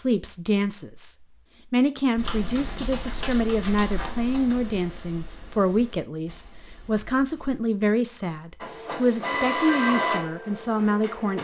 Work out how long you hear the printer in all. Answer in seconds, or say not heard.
3 s.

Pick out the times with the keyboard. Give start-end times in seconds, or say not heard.
2.1-7.6.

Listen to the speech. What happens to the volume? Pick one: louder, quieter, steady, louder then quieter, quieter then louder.
steady.